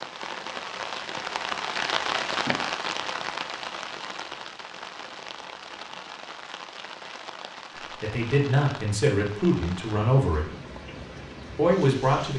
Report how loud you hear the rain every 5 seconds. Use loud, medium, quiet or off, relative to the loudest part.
loud, medium, medium.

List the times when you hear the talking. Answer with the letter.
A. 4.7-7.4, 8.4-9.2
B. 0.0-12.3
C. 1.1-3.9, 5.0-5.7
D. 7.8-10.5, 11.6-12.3
D.